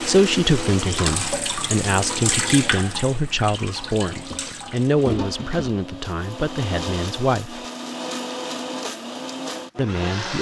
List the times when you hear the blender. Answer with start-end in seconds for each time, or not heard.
0.0-10.3.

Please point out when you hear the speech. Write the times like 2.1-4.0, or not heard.
0.1-7.7, 9.8-10.3.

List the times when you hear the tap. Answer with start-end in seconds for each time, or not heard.
0.0-5.7.